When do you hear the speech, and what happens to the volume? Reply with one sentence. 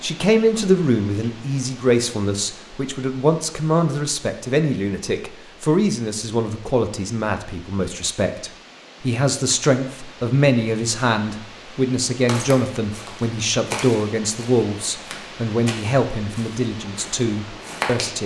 The speech can be heard from 0.0 to 18.2 s, at a steady volume.